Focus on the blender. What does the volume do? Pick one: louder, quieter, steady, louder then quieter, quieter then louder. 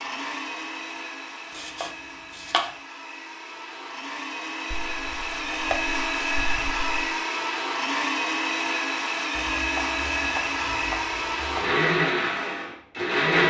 louder.